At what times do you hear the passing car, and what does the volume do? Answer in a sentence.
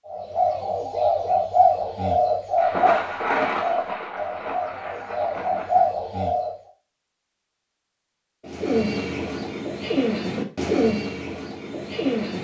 The passing car can't be heard in this clip.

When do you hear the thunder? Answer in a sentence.
The thunder can be heard from 2.5 to 5.9 s.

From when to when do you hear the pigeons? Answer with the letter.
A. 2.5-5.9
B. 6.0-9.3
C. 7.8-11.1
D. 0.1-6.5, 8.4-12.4
D.